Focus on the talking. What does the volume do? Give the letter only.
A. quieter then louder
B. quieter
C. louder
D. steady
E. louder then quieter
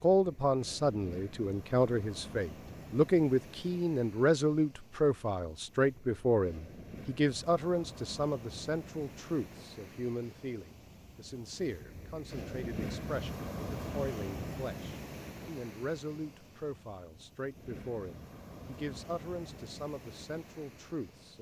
B.